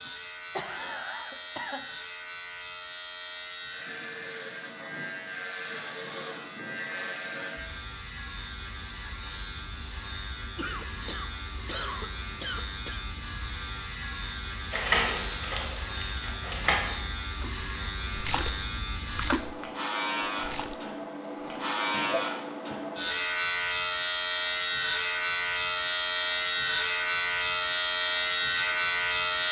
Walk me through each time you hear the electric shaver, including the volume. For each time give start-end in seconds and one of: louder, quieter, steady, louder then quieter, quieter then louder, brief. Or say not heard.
0.0-29.4 louder.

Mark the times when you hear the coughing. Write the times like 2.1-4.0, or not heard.
0.1-1.9, 10.6-13.1, 21.9-22.8.